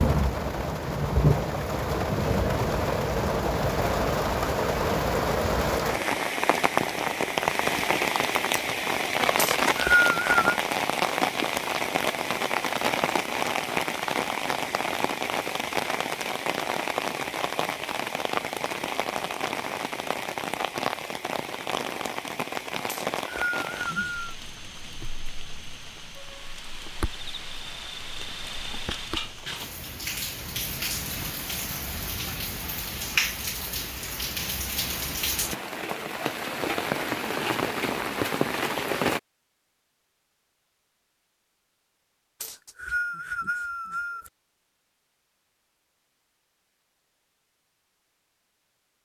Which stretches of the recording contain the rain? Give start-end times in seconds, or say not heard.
0.0-39.2.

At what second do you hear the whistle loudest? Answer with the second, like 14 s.
10 s.